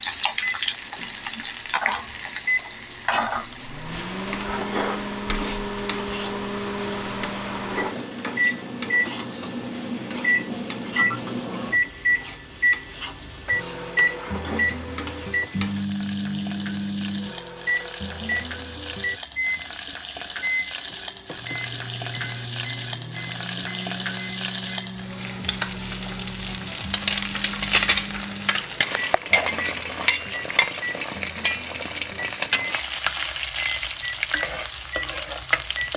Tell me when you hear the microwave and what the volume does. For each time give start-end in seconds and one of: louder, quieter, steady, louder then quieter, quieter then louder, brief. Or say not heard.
0.0-35.9 louder then quieter.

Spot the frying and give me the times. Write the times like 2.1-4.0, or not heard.
0.0-35.9.